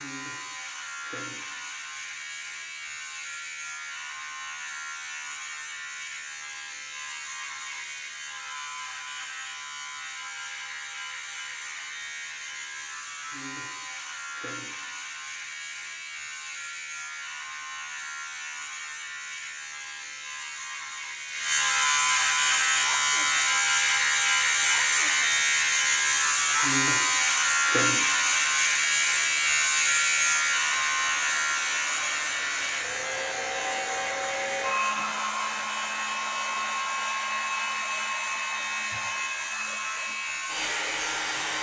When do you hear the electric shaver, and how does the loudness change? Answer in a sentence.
You can hear the electric shaver from 0.0 to 41.5 s, getting louder then quieter.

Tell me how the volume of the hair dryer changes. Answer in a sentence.
The volume of the hair dryer goes up.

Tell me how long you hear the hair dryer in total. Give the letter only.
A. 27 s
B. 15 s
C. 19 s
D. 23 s
C.